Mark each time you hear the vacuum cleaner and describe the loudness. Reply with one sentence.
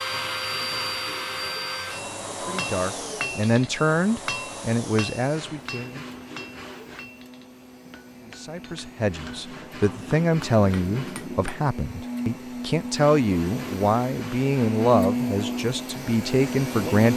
The vacuum cleaner can be heard from 0.0 to 17.1 s, getting quieter then louder.